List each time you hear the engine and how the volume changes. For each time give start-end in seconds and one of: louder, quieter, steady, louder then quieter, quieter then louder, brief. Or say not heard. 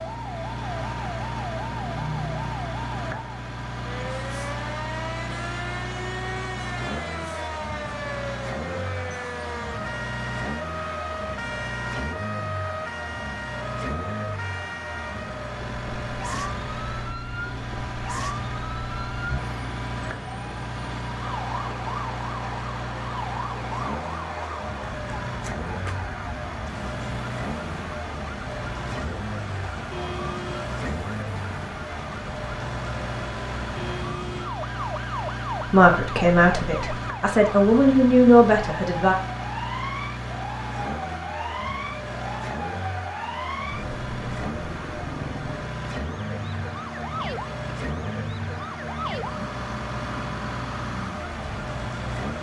0.0-52.3 steady.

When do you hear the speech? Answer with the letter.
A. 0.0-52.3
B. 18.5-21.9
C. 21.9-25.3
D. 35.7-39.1
D.